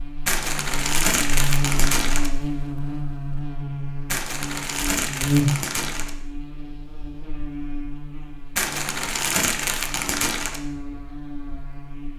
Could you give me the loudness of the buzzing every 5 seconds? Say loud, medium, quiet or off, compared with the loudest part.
loud, loud, medium.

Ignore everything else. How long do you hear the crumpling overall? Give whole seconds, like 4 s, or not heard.
6 s.